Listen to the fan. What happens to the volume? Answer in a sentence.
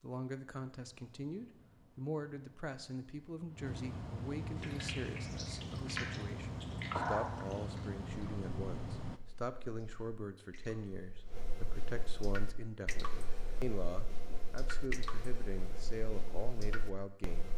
The loudness of the fan goes up.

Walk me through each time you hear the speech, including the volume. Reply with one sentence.
The speech can be heard from 0.0 to 17.5 s, at a steady volume.